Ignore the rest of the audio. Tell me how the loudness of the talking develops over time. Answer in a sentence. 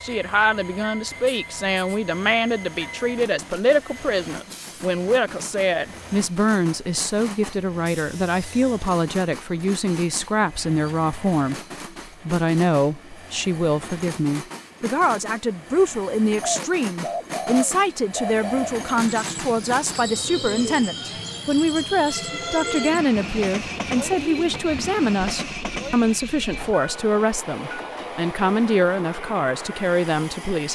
The loudness of the talking stays about the same.